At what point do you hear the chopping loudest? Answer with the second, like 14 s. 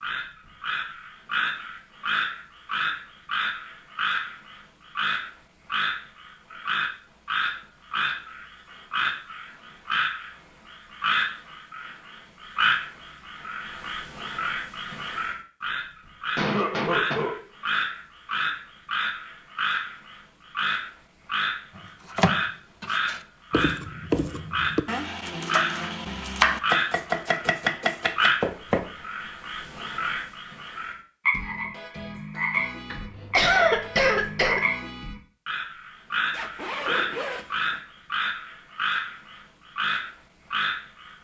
27 s.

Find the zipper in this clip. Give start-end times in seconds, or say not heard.
36.3-37.8.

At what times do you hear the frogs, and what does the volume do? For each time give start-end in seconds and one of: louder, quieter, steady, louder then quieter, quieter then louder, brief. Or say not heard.
0.0-41.1 steady.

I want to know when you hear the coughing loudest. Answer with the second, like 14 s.
34 s.